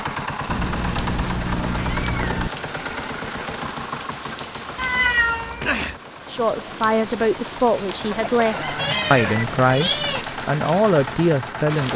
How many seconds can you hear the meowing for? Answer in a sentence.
You can hear the meowing for 5 seconds altogether.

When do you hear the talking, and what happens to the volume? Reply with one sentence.
The talking can be heard from 6.3 to 11.9 s, at a steady volume.